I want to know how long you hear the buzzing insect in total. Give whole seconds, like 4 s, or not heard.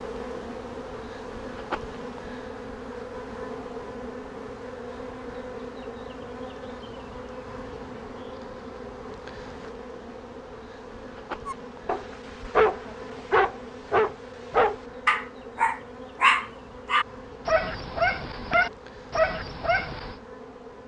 21 s.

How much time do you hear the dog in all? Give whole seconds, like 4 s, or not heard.
9 s.